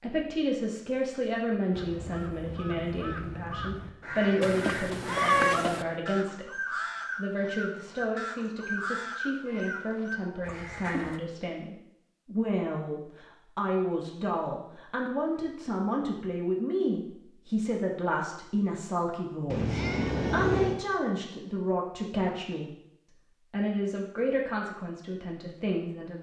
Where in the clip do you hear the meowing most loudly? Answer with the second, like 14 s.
5 s.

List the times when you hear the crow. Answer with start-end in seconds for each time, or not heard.
1.7-11.2.